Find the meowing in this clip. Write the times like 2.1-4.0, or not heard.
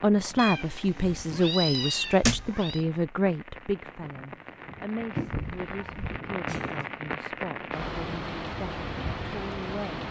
0.3-2.9, 5.2-6.2.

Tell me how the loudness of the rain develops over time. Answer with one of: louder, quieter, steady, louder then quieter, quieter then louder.
louder.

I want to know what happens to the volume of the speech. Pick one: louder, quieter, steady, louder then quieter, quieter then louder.
quieter.